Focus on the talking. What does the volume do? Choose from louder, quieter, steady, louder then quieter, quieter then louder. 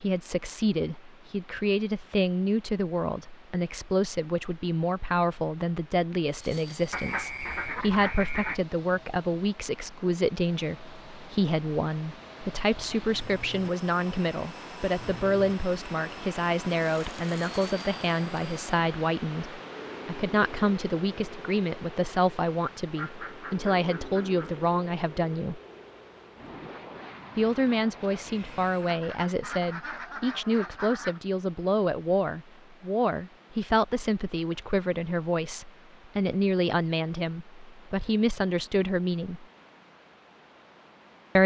steady.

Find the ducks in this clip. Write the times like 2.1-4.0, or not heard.
6.9-8.6, 22.9-24.6, 28.8-31.2.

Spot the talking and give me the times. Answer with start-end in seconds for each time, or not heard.
0.0-25.6, 27.4-39.5.